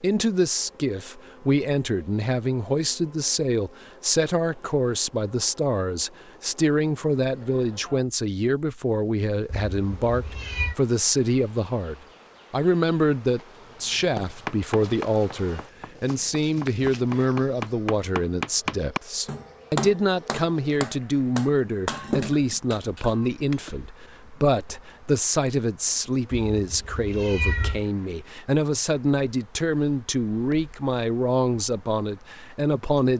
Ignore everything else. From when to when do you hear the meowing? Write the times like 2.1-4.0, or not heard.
9.4-10.8, 26.5-27.9.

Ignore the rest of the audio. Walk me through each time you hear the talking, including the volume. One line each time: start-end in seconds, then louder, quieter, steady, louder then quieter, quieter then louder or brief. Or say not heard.
0.0-33.1 steady.